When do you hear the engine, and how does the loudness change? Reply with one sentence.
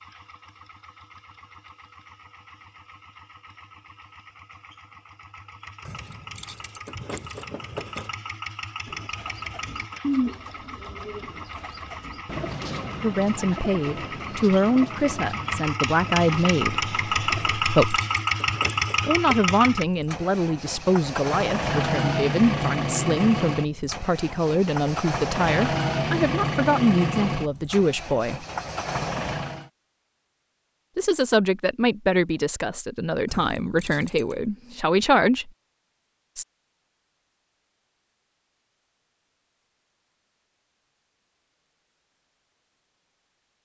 You can hear the engine from 0.0 to 29.7 s, getting louder.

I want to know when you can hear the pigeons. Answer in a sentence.
You can hear the pigeons from 8.8 to 17.5 s.